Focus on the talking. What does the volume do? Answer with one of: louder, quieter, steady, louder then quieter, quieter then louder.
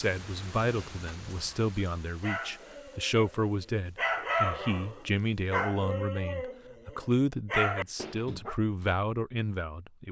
steady.